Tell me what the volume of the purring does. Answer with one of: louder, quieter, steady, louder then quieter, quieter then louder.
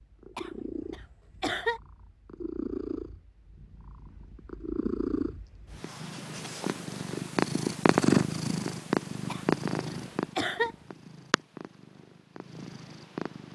louder then quieter.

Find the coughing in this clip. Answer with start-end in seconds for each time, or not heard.
0.3-1.8, 9.3-10.8.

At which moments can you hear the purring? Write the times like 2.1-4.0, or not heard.
0.0-13.5.